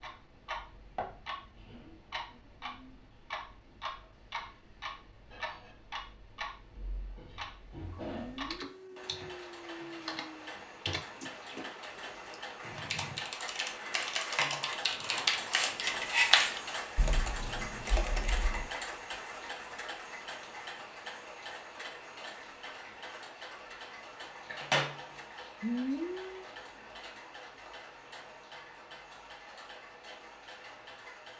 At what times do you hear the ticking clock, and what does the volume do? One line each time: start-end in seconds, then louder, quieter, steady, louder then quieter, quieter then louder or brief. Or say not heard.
0.0-31.3 louder then quieter.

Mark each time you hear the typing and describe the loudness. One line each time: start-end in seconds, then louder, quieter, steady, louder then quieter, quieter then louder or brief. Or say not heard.
7.8-18.7 louder.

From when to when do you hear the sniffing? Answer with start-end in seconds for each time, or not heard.
8.1-10.4, 25.6-26.4.